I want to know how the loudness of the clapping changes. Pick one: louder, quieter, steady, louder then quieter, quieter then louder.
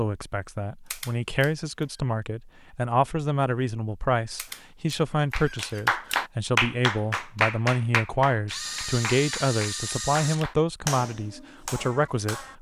quieter.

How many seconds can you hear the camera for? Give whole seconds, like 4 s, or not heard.
4 s.